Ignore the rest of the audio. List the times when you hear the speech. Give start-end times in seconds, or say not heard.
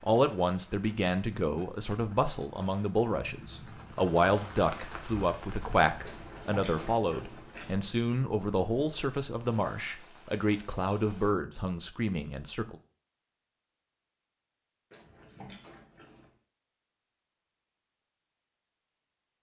0.0-12.8.